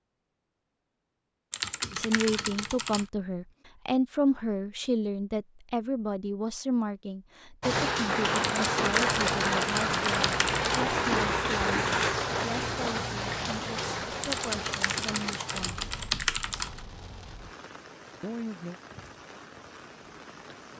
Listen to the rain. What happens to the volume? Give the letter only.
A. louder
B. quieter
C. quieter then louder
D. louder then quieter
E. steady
B.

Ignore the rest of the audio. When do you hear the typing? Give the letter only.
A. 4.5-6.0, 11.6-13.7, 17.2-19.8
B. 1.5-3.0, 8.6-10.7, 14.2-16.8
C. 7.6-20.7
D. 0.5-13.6
B.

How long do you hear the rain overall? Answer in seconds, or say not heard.
13 s.